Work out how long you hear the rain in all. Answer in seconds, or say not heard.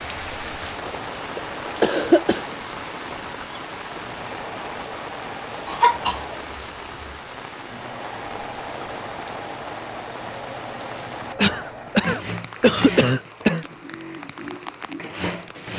16 s.